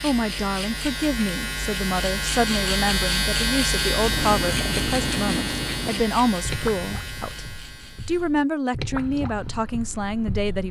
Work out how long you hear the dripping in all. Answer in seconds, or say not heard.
7 s.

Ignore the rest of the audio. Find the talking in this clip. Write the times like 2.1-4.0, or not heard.
0.0-7.5, 8.1-10.6.